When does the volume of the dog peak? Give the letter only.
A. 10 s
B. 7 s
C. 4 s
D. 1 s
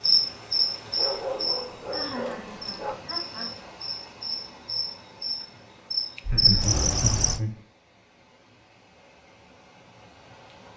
D.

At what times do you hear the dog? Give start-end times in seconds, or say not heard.
0.9-3.0.